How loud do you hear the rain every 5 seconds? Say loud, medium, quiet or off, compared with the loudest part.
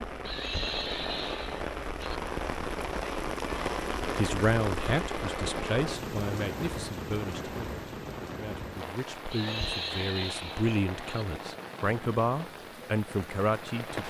loud, loud, medium.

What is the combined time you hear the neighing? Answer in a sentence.
You can hear the neighing for 4 seconds altogether.